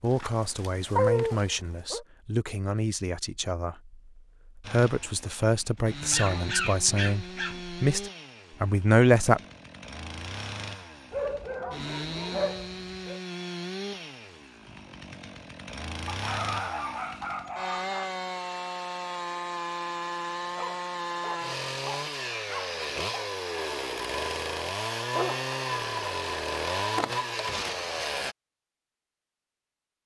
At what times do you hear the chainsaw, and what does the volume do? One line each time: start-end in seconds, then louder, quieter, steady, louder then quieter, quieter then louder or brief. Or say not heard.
4.6-28.4 louder.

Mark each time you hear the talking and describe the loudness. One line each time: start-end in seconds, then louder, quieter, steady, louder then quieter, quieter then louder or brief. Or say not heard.
0.0-9.4 louder.